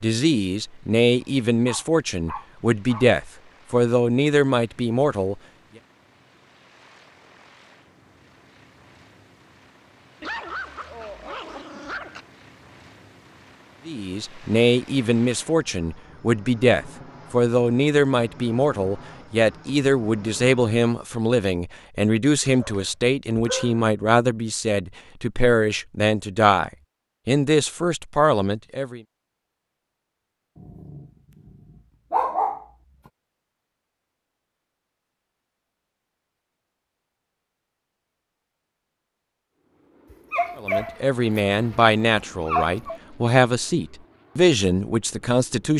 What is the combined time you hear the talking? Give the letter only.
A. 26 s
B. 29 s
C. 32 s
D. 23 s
A.